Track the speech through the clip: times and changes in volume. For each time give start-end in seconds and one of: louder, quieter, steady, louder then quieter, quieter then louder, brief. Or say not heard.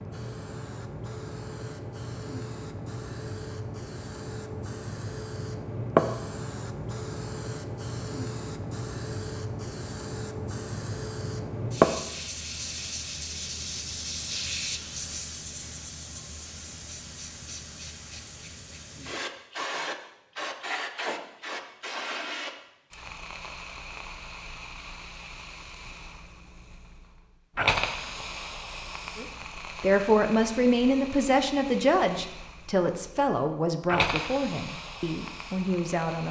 29.1-36.2 quieter.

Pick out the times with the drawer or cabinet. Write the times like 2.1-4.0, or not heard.
not heard.